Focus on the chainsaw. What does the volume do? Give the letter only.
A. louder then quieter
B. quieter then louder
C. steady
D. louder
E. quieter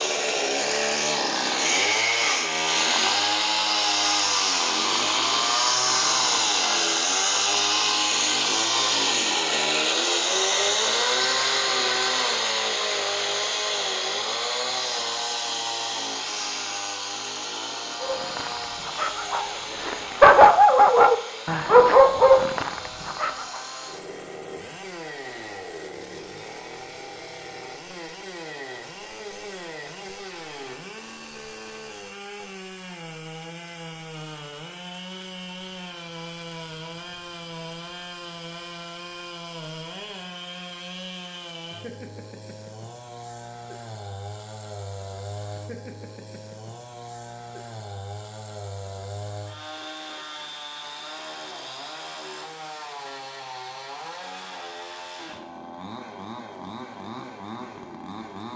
E.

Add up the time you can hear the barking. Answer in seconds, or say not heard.
5 s.